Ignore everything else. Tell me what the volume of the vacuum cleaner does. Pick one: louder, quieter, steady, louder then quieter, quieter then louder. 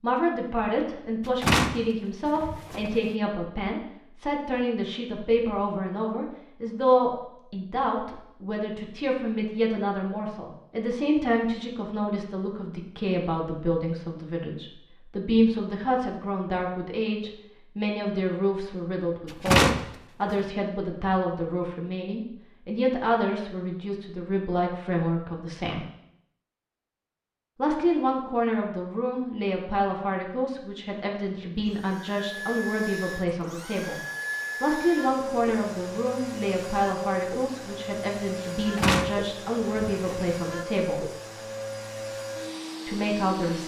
steady.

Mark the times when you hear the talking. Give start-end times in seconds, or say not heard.
0.0-25.9, 27.6-34.0, 34.6-41.0, 42.9-43.6.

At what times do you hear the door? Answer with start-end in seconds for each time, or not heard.
1.4-3.0, 19.4-20.4, 38.6-40.4.